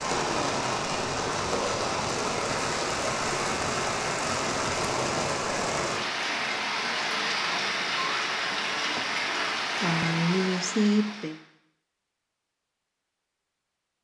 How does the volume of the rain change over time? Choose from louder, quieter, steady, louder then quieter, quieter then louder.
steady.